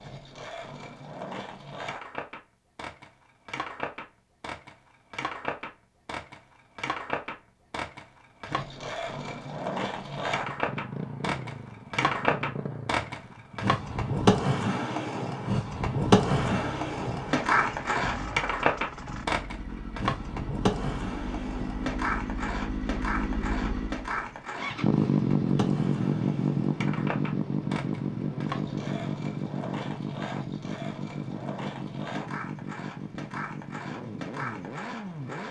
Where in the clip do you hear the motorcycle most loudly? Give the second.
25 s.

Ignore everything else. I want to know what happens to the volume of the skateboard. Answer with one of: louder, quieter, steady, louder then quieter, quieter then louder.
louder then quieter.